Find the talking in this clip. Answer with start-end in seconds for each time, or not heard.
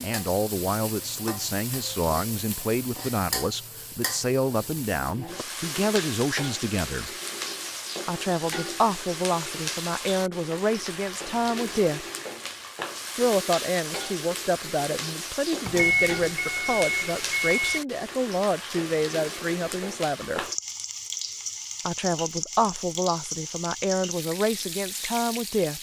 0.0-7.1, 8.1-12.1, 13.2-20.4, 21.9-25.7.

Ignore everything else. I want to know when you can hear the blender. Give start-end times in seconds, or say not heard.
not heard.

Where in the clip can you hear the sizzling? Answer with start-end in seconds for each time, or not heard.
0.0-25.7.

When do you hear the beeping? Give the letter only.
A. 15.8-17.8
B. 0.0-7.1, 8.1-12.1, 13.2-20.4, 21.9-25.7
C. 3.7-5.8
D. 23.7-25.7
A.